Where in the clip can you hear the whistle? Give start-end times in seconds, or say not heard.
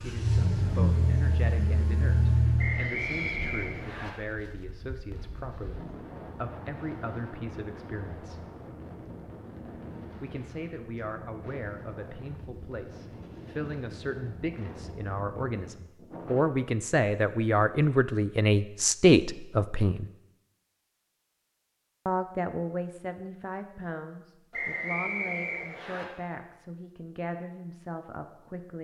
2.5-4.1, 24.5-26.1.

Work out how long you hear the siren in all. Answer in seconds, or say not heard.
not heard.